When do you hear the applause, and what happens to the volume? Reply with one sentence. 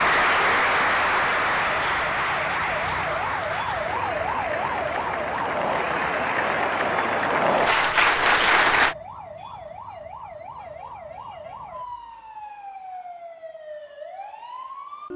The applause can be heard from 0.0 to 8.9 s, getting quieter then louder.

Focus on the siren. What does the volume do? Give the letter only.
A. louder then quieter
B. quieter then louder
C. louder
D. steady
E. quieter
E.